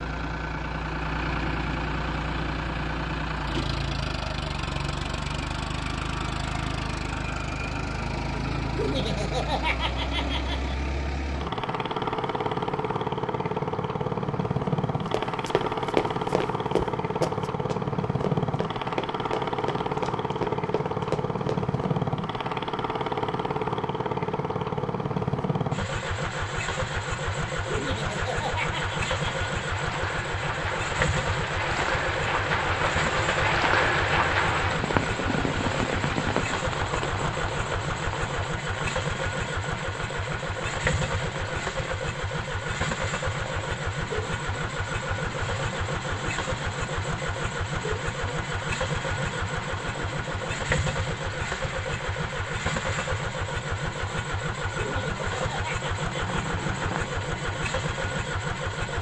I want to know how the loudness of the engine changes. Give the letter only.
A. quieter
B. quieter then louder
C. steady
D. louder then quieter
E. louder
C.